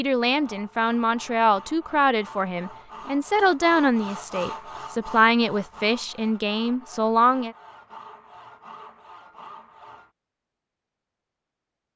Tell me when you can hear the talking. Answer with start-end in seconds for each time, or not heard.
0.0-7.5.